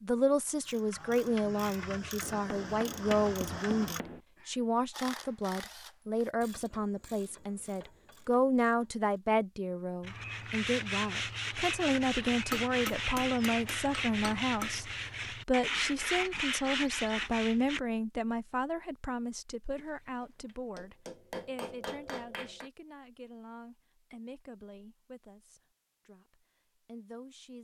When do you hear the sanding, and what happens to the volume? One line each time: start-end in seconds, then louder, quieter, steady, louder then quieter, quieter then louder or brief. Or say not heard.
10.0-17.8 steady.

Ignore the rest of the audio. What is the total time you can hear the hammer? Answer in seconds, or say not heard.
7 s.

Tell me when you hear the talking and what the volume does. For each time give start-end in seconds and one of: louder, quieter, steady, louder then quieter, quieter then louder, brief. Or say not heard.
0.0-27.5 quieter.